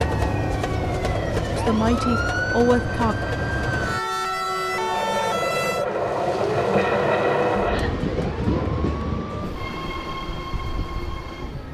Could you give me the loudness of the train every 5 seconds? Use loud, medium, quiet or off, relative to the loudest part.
medium, loud, medium.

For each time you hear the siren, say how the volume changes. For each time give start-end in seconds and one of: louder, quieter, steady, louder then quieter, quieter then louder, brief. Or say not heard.
0.0-11.6 quieter.